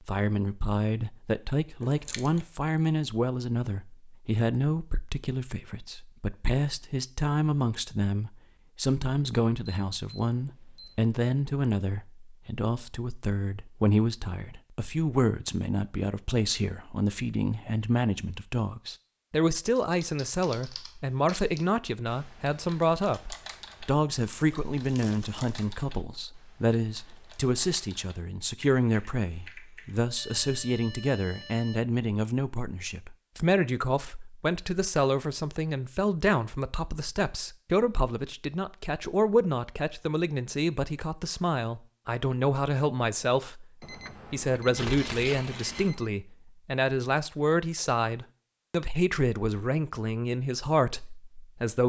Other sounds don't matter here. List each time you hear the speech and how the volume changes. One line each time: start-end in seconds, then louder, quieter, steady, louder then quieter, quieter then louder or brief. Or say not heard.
0.1-51.8 steady.